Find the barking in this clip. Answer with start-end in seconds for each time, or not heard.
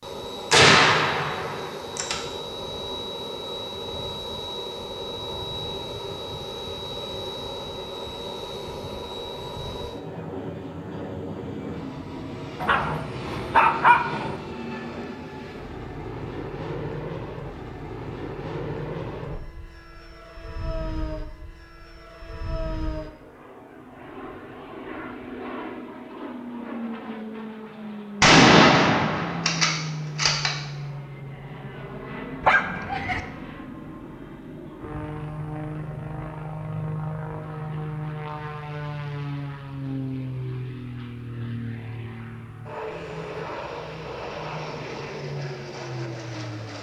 12.6-14.3, 32.4-33.2.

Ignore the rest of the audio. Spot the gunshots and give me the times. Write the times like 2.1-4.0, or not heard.
0.5-2.2, 28.2-30.5.